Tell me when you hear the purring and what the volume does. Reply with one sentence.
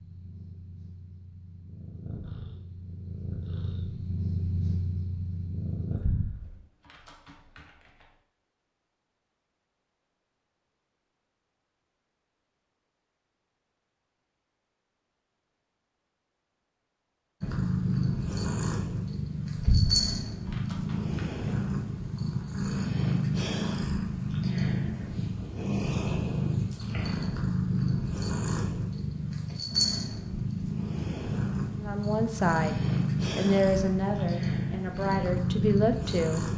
The purring can be heard from 0.0 to 6.0 s, getting louder; and from 17.4 to 36.5 s, at a steady volume.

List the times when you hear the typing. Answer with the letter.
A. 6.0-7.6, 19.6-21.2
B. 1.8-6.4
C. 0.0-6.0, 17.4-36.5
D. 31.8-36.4
A.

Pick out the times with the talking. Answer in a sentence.
You can hear the talking from 31.8 to 36.4 s.